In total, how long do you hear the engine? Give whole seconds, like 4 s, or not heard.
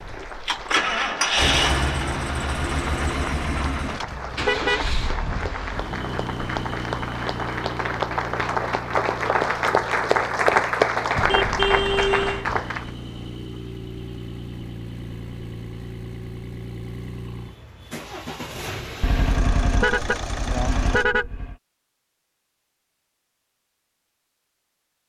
21 s.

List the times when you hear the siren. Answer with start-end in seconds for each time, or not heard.
not heard.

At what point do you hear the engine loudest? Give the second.
1 s.